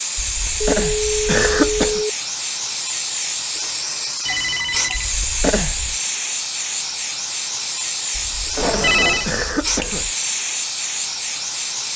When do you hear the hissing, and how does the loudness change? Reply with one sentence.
You can hear the hissing from 0.0 to 11.9 s, at a steady volume.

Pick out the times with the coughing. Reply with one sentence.
You can hear the coughing from 0.1 to 2.0 s, from 5.0 to 6.0 s and from 8.2 to 10.2 s.